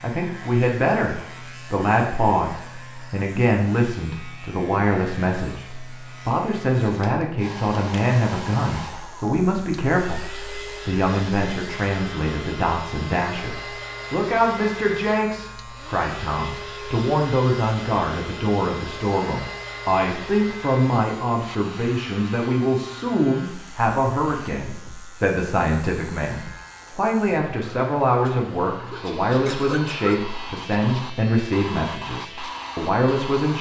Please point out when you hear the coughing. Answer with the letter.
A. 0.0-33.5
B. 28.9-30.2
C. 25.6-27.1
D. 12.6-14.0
B.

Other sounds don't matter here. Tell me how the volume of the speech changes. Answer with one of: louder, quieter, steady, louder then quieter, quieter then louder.
steady.